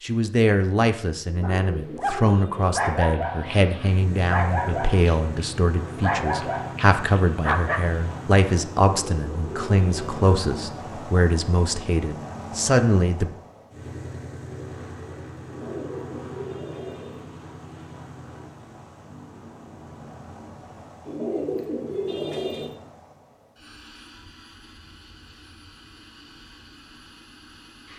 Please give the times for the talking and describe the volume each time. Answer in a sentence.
The talking can be heard from 0.0 to 13.3 s, at a steady volume.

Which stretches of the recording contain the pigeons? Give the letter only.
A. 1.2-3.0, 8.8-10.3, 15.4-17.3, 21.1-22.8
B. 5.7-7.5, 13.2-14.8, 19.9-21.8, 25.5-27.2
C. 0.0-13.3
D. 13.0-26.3
A.